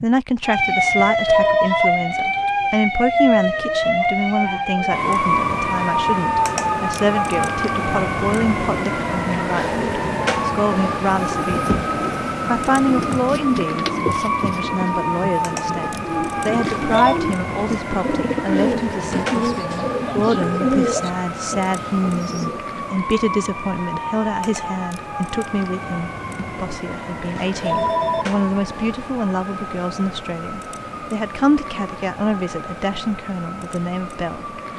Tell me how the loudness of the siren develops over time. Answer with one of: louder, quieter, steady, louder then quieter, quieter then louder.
quieter.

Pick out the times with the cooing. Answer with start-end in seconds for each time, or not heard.
11.2-22.6.